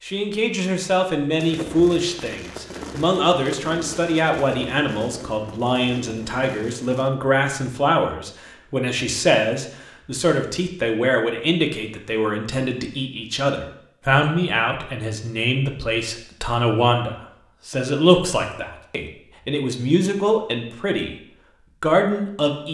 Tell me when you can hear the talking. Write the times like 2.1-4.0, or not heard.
0.0-22.6.